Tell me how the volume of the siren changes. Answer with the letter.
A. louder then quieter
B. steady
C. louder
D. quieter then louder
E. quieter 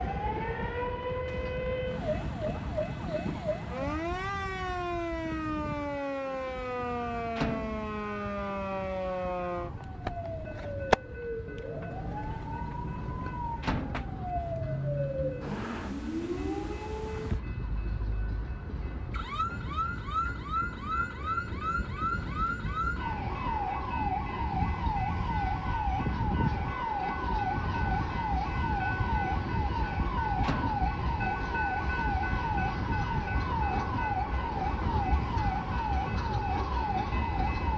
B.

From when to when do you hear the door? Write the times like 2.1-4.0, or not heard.
7.3-8.0, 13.6-14.2, 30.4-30.9.